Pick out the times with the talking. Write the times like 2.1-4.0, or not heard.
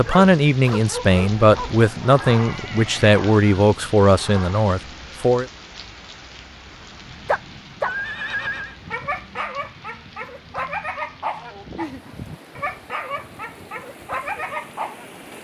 0.0-5.5.